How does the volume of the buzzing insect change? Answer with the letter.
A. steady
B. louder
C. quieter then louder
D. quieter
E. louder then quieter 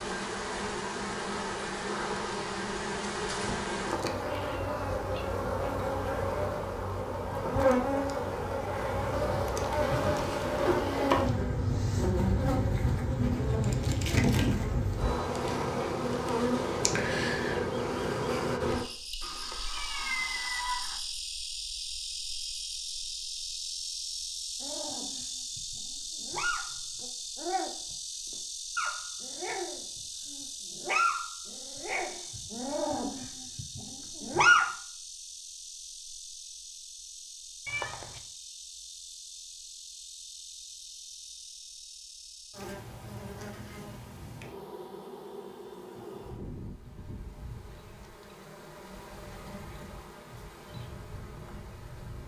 D.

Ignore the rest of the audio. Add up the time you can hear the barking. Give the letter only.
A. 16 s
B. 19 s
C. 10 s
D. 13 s
C.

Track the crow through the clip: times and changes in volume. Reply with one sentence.
You can't hear the crow here.